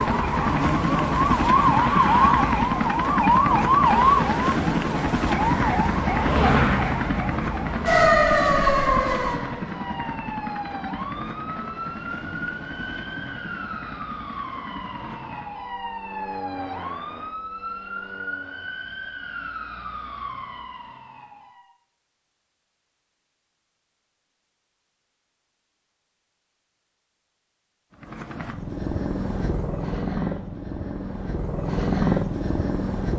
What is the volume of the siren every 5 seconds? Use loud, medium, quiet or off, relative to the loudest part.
loud, loud, quiet, quiet, quiet, off, off.